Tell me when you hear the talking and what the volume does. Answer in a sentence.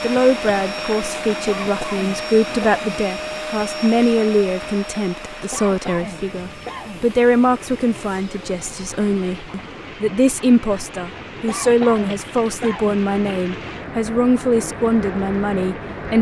You can hear the talking from 0.0 to 16.1 s, at a steady volume.